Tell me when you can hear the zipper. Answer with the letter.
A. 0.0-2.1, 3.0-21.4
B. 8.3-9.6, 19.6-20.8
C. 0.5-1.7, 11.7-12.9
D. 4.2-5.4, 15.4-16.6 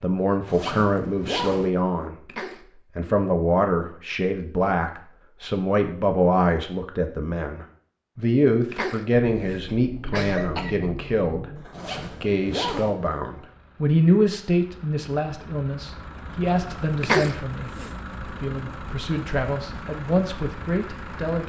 C.